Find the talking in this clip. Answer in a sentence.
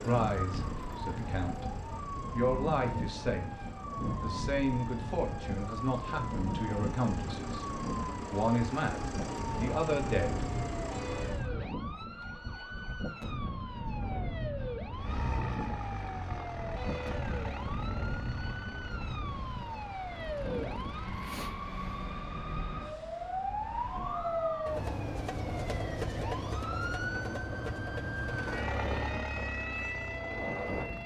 The talking can be heard from 0.0 to 7.7 s and from 8.3 to 10.4 s.